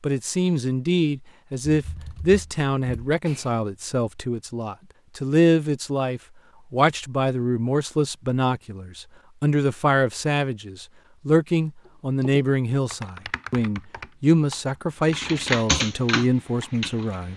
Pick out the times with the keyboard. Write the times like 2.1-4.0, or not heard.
1.7-3.5, 11.8-17.1.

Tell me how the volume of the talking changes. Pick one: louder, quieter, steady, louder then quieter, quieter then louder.
steady.